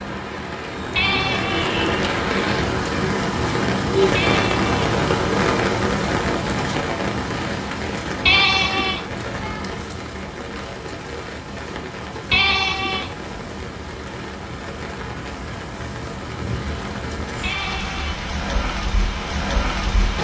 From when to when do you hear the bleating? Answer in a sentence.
You can hear the bleating from 0.9 to 1.8 s, from 4.2 to 4.7 s, from 8.2 to 9.1 s, from 12.3 to 13.2 s and from 17.4 to 18.2 s.